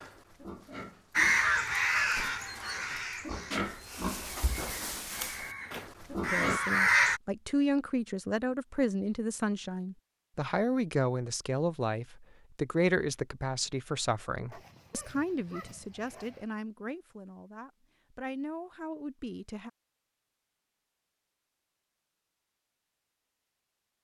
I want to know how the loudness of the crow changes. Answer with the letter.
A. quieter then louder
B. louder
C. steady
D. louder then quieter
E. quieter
A.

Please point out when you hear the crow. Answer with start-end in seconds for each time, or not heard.
1.1-7.2.